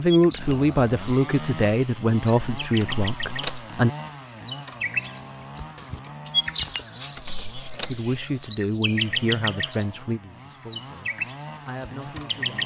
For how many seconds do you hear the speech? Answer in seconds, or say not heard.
9 s.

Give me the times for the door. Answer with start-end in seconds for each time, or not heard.
2.8-3.6, 7.2-8.0.